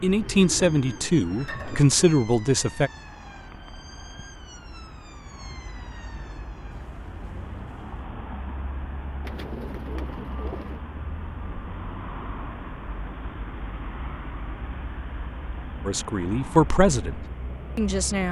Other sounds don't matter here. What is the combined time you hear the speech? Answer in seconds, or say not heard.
5 s.